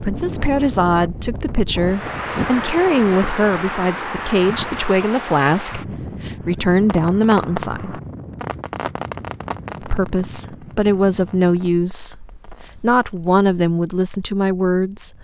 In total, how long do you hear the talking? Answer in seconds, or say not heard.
13 s.